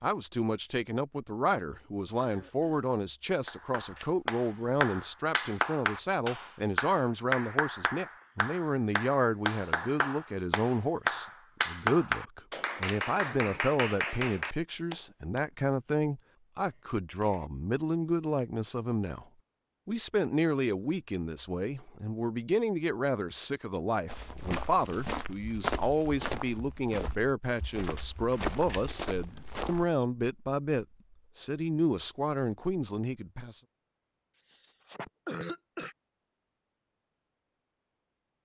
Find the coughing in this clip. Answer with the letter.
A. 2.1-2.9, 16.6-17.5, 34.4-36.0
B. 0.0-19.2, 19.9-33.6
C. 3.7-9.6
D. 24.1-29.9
A.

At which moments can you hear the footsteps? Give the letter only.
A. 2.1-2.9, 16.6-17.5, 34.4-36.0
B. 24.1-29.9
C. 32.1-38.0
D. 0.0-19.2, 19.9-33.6
B.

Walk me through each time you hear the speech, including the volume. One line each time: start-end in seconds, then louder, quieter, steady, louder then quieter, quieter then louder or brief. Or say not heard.
0.0-19.2 steady
19.9-33.6 steady.